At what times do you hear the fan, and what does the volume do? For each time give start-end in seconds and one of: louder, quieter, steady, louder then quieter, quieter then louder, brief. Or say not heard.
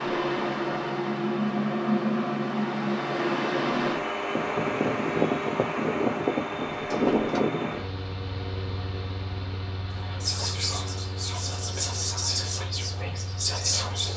0.0-14.1 quieter.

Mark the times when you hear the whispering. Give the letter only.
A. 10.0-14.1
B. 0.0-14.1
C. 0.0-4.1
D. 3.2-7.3
A.